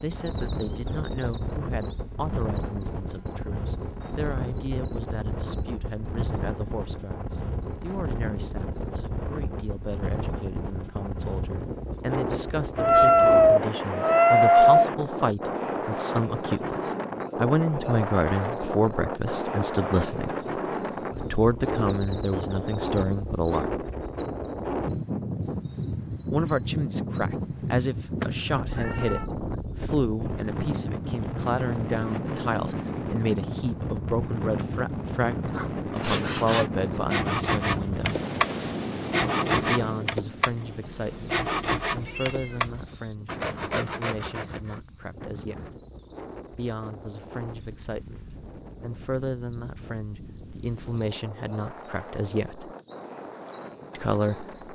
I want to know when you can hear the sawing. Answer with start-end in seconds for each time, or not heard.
35.5-44.8.